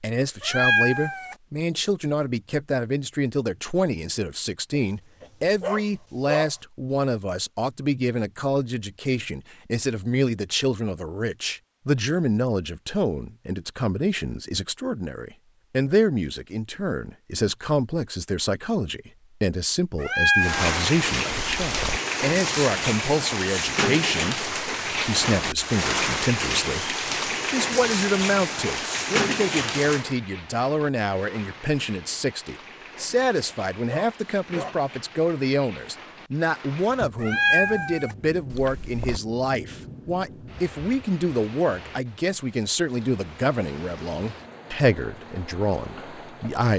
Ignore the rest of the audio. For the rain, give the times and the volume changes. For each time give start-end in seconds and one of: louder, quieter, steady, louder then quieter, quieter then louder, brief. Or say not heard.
20.4-46.7 quieter.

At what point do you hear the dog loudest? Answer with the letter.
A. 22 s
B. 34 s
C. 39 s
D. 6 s
D.